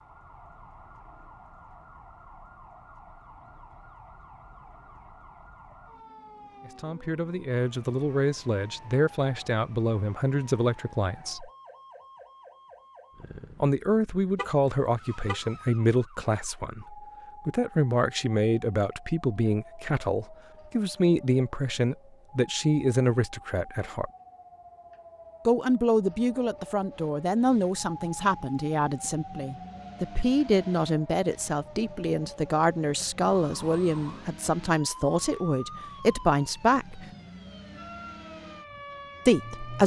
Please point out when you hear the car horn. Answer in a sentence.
The car horn can be heard from 14.3 to 15.6 s.